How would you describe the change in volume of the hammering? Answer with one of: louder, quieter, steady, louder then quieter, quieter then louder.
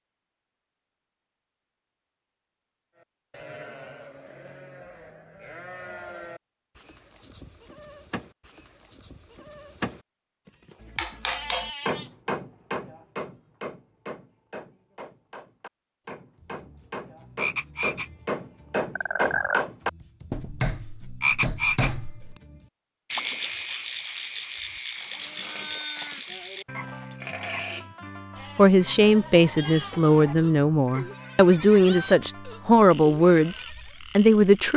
quieter then louder.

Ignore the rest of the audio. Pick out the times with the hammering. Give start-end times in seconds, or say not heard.
10.8-22.4.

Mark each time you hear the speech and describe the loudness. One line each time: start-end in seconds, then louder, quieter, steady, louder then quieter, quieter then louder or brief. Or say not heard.
28.6-34.7 steady.